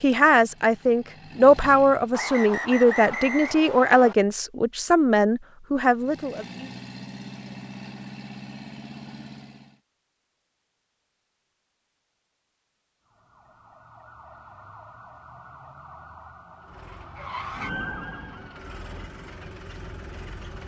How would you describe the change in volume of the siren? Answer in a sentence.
The volume of the siren goes up, then down.